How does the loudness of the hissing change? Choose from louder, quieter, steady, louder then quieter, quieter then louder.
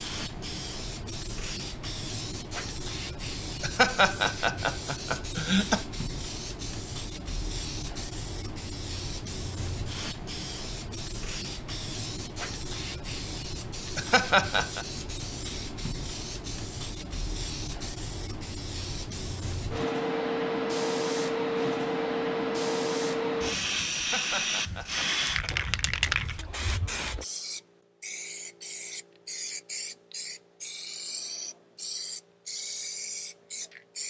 louder then quieter.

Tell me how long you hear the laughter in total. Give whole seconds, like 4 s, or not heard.
5 s.